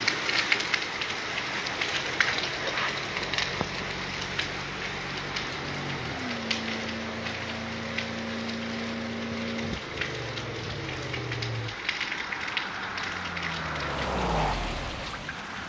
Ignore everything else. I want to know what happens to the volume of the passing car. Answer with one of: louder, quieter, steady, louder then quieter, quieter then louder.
louder.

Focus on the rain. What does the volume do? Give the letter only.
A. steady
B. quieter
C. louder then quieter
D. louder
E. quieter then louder
B.